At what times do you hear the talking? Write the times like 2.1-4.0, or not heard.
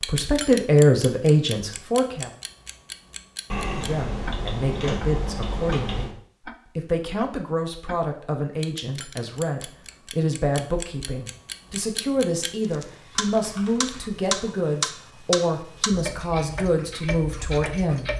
0.1-2.3, 3.8-6.2, 6.8-18.1.